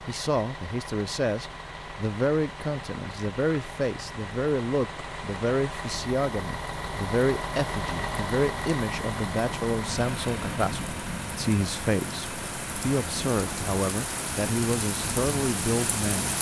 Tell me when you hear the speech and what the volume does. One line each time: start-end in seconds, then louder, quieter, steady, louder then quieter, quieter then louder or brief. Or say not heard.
0.1-16.3 steady.